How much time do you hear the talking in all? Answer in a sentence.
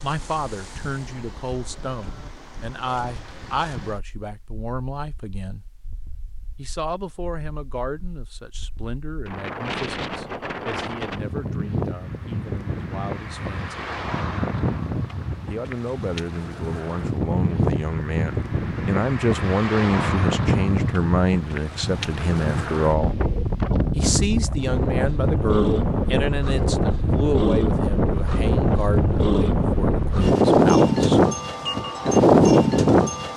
The talking can be heard for 28 seconds in total.